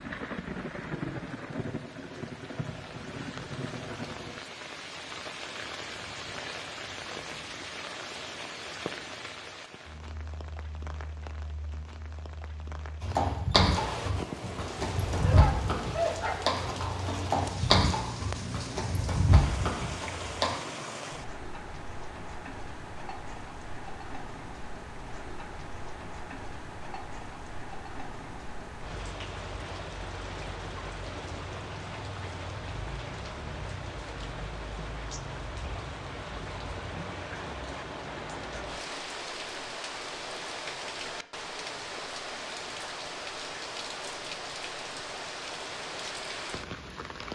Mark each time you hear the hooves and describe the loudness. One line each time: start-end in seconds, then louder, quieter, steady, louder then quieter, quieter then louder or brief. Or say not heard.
13.0-20.6 steady.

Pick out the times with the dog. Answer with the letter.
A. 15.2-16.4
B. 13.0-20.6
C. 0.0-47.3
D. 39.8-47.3
A.